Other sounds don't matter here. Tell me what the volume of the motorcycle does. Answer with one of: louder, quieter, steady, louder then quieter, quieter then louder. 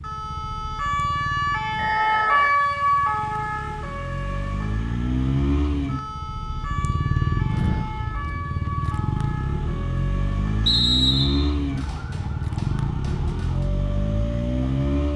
louder.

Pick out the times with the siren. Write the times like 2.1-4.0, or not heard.
0.0-15.1.